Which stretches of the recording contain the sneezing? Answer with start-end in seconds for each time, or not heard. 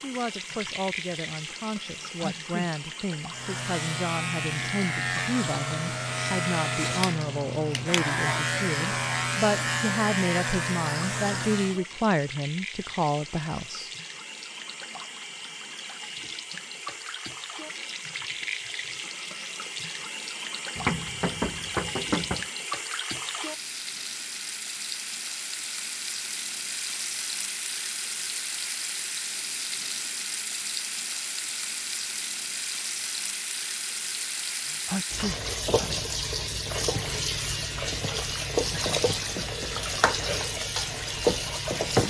1.9-2.7, 34.6-35.9.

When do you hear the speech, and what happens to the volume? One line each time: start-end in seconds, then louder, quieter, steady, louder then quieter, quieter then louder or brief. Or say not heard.
0.0-13.9 louder.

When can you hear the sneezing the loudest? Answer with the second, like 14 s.
35 s.